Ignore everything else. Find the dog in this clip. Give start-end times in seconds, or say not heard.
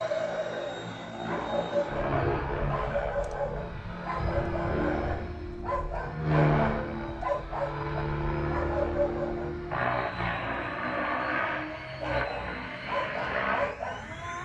0.0-9.6, 12.0-14.2.